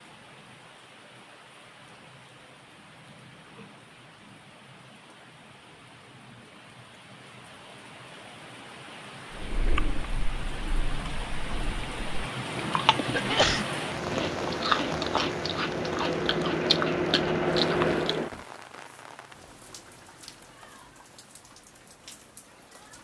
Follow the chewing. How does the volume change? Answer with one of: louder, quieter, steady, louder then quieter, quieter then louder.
louder.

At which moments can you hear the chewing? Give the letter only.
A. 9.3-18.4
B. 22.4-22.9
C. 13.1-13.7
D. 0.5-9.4
A.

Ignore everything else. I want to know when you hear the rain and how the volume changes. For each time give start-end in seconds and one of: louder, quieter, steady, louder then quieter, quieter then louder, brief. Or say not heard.
0.0-22.9 louder then quieter.